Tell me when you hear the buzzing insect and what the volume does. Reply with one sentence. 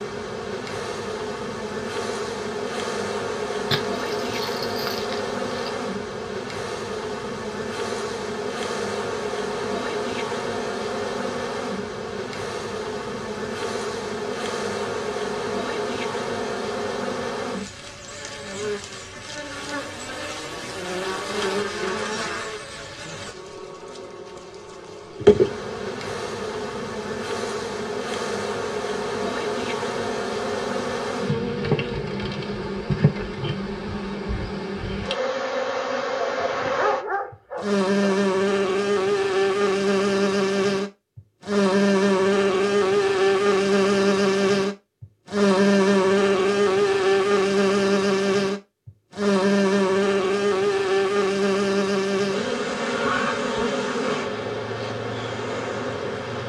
You can hear the buzzing insect from 0.0 to 56.4 s, getting louder.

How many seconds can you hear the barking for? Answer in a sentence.
The barking can be heard for 4 seconds in total.